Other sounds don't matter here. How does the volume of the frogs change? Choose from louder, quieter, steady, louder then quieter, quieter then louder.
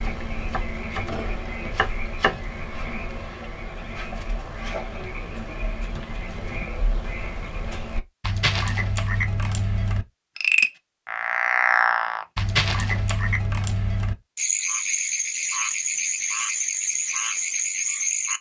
louder.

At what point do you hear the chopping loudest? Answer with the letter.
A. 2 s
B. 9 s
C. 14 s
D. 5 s
A.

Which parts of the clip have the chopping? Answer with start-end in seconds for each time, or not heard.
0.0-2.4.